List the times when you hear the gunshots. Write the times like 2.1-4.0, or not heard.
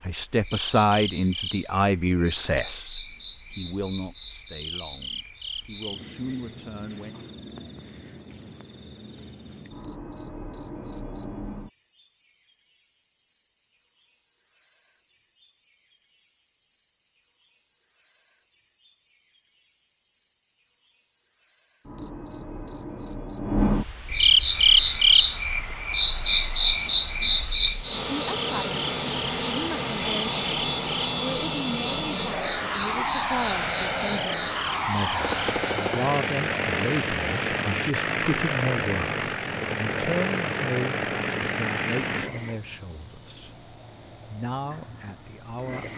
35.2-36.1.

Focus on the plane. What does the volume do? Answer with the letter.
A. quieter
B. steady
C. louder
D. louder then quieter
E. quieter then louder
C.